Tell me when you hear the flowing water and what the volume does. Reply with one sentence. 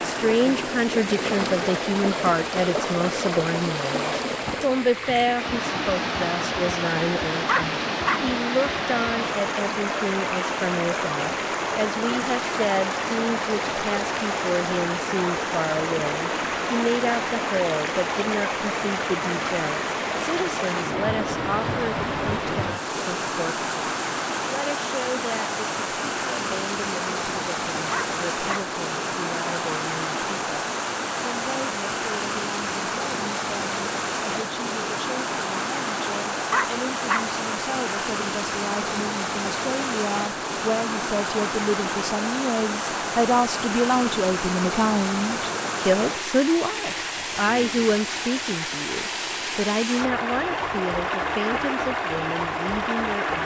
You can hear the flowing water from 0.0 to 53.4 s, at a steady volume.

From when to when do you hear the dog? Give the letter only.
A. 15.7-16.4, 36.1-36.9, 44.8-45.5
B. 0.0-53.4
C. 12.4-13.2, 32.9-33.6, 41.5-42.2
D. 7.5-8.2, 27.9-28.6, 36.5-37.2
D.